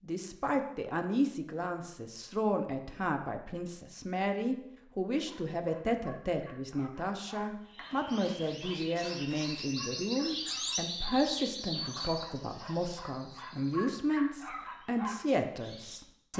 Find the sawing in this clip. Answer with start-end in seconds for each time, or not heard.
not heard.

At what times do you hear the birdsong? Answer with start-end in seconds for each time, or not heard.
7.7-16.3.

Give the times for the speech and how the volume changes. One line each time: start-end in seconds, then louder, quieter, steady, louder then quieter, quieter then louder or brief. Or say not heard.
0.0-16.3 steady.